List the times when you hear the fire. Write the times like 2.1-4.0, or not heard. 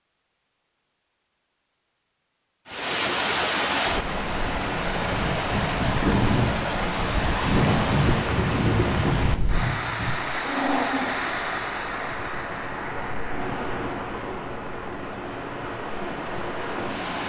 not heard.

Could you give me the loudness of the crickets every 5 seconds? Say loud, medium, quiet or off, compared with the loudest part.
off, loud, medium, quiet.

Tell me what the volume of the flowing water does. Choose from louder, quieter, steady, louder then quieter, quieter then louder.
quieter.